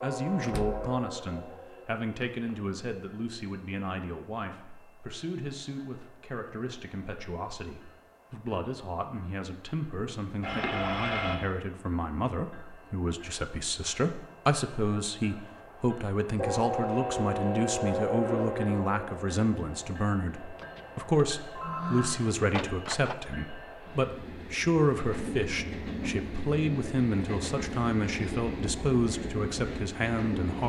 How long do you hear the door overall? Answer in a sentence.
The door can be heard for 3 seconds in total.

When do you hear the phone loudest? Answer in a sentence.
The loudest moment of the phone is at 11 seconds.